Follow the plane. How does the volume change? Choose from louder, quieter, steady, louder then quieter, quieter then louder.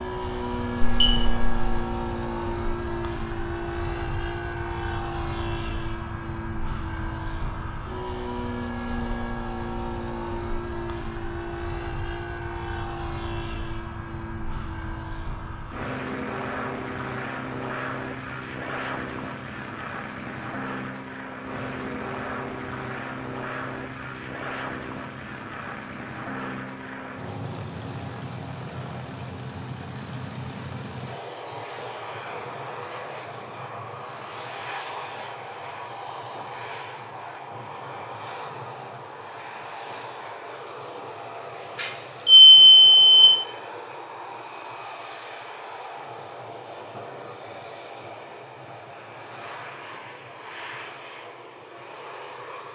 quieter.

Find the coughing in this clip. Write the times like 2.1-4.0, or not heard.
not heard.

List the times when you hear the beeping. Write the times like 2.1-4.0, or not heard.
0.8-1.6, 41.8-43.2.